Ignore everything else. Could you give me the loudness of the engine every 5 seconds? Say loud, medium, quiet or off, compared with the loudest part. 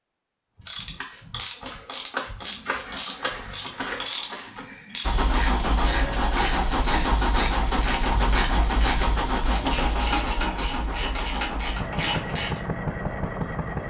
off, loud, medium.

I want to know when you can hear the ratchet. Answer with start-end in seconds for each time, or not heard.
0.6-12.5.